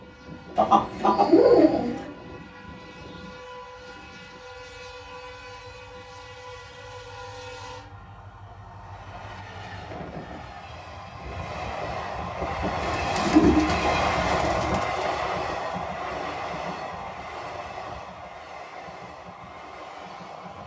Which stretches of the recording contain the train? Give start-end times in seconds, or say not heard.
0.0-20.6.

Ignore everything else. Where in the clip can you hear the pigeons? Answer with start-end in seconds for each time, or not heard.
0.6-2.1, 12.8-14.8.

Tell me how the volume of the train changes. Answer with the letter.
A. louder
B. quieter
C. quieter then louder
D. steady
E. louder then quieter
E.